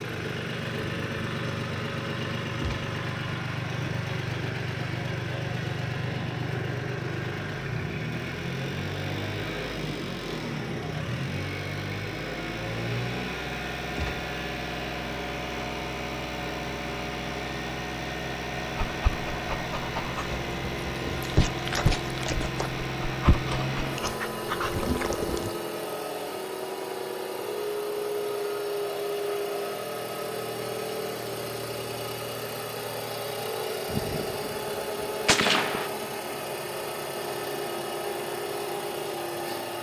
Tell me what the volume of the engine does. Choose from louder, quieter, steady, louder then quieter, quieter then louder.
steady.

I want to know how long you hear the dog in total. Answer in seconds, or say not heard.
7 s.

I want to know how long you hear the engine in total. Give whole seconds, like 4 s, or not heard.
40 s.